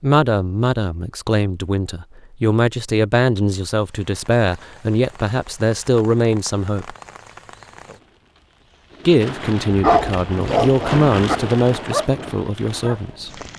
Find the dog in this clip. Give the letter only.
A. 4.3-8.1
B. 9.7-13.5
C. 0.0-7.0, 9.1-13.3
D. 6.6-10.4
B.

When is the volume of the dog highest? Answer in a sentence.
The loudest moment of the dog is at 10 seconds.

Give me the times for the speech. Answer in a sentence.
You can hear the speech from 0.0 to 7.0 s and from 9.1 to 13.3 s.